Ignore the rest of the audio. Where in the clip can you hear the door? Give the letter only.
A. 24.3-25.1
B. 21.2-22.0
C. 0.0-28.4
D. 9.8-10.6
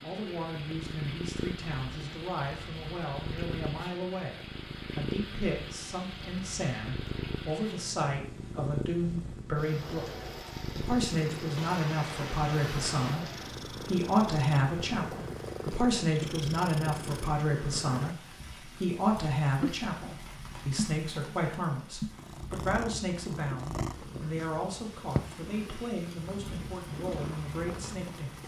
D.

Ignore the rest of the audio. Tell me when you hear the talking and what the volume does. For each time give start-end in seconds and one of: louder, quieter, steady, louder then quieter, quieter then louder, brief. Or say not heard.
0.0-28.4 louder then quieter.